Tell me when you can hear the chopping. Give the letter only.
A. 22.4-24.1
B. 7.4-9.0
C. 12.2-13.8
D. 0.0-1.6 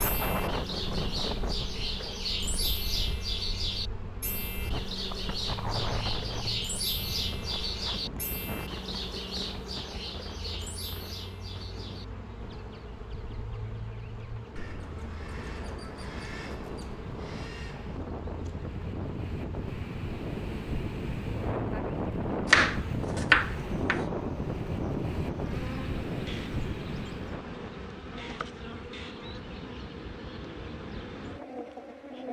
A.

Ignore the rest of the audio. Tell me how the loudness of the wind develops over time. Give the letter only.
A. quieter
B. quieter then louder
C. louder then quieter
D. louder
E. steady
B.